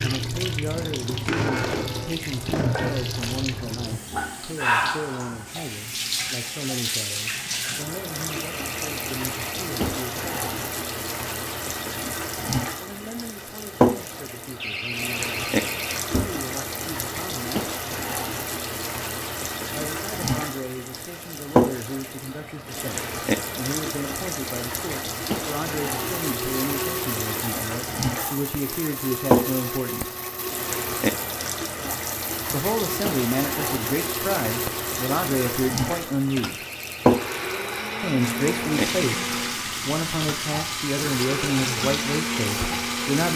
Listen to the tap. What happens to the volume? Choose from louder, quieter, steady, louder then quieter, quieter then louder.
steady.